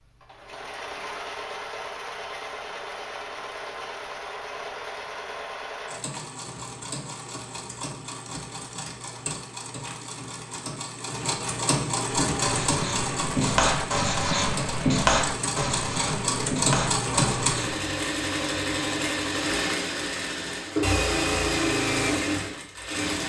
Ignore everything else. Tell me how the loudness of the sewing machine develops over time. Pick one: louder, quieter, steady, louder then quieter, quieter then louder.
louder.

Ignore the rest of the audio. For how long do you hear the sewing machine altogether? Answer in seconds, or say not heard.
23 s.